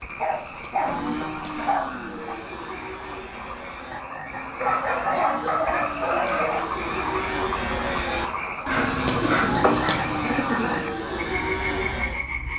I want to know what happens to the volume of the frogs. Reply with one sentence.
The volume of the frogs goes up.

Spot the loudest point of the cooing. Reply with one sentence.
The loudest moment of the cooing is at 10 seconds.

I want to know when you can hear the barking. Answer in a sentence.
The barking can be heard from 0.1 to 2.4 s, from 4.6 to 6.6 s and from 8.7 to 9.9 s.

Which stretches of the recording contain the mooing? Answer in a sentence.
You can hear the mooing from 0.8 to 12.2 s.